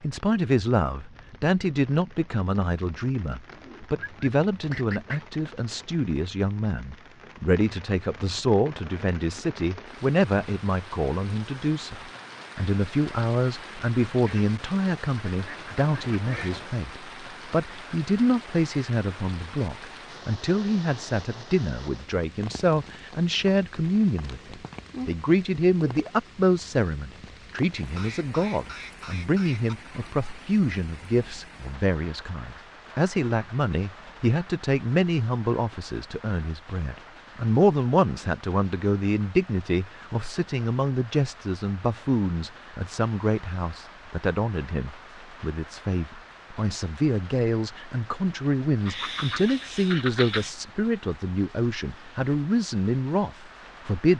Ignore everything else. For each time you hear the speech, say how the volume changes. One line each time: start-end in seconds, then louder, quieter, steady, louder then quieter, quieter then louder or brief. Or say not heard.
0.0-54.1 steady.